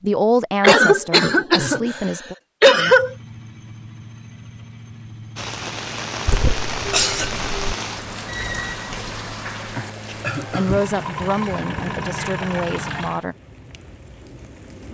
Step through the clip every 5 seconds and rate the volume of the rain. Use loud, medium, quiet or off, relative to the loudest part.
off, loud, medium.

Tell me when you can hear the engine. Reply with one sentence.
You can hear the engine from 2.8 to 13.2 s.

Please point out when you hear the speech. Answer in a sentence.
You can hear the speech from 0.0 to 2.4 s and from 10.1 to 13.3 s.